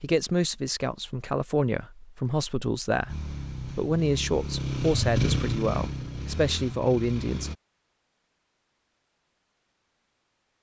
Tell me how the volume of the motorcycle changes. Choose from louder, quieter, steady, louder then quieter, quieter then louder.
louder then quieter.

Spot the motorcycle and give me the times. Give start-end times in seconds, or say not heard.
3.0-7.5.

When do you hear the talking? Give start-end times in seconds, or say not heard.
0.0-7.5.